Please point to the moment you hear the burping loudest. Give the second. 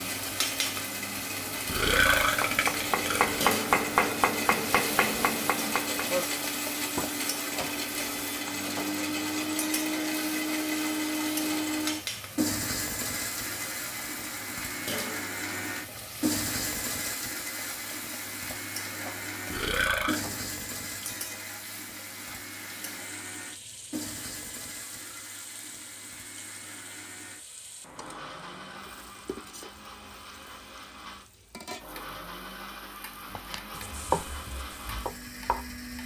2 s.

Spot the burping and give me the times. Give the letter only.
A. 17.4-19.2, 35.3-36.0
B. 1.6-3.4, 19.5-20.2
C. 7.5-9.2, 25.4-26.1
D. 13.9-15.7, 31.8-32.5
B.